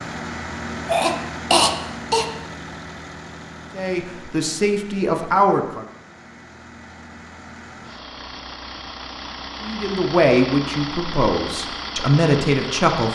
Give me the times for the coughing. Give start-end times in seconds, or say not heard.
0.8-2.2.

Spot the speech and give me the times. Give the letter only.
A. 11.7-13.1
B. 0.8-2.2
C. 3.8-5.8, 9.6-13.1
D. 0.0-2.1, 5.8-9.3
C.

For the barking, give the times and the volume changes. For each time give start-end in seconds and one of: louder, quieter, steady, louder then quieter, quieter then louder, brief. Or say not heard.
not heard.